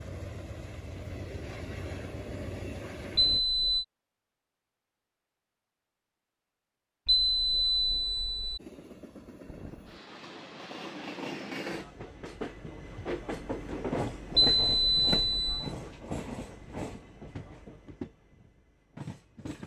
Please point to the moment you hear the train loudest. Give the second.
14 s.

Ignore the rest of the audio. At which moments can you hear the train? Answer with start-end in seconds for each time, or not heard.
0.0-3.4, 8.6-19.6.